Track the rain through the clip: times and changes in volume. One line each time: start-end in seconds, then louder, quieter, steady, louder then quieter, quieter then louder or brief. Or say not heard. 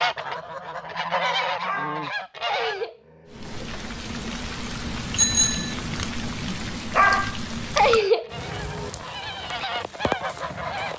3.2-10.9 steady.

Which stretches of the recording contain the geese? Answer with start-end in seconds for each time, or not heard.
0.0-2.9, 8.1-10.9.